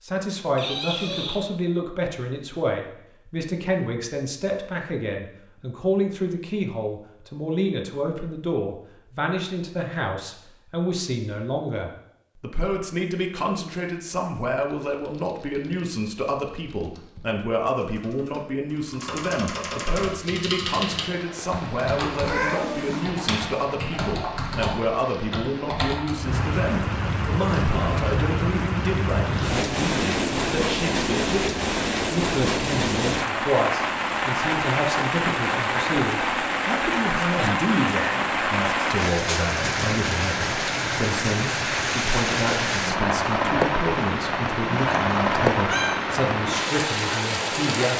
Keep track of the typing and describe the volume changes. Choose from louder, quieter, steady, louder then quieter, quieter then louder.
louder.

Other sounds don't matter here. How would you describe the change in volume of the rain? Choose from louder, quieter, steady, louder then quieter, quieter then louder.
louder.